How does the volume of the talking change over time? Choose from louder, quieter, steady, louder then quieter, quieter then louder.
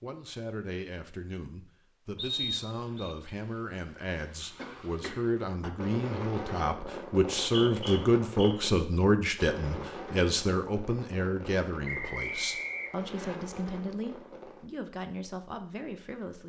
louder then quieter.